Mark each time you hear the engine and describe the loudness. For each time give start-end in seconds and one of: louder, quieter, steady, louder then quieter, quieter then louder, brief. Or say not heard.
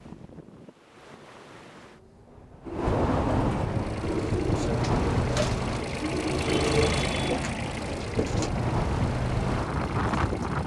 3.6-10.6 louder then quieter.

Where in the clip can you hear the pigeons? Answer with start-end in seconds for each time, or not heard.
2.6-8.5.